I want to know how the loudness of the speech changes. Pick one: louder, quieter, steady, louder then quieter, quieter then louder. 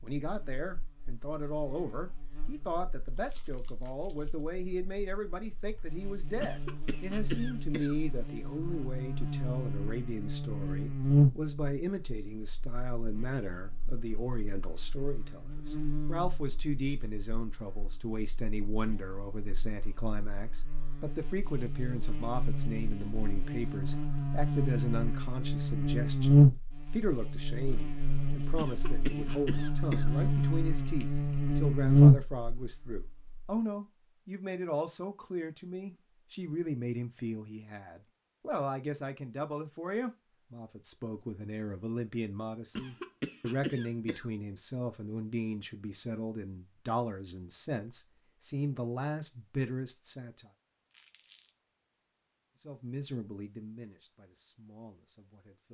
steady.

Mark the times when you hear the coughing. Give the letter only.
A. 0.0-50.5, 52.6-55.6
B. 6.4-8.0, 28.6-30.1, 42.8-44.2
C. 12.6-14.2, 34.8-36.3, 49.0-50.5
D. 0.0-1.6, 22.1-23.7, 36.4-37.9
B.